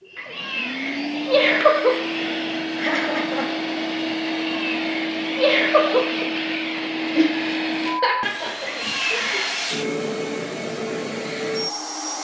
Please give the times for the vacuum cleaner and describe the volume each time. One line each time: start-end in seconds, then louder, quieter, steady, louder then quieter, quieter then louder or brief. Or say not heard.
0.0-12.1 steady.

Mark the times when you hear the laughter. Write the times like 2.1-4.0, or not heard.
2.8-3.5, 7.2-9.4.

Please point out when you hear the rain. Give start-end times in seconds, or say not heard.
not heard.